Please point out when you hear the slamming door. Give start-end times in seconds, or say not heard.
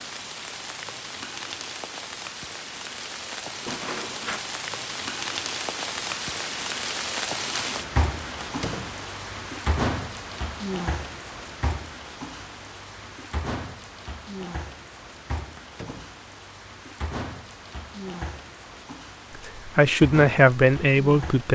3.6-4.4, 8.4-9.1, 15.6-16.2.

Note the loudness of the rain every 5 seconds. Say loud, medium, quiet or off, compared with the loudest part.
medium, loud, medium, medium, medium.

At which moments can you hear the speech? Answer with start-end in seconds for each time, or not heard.
19.4-21.5.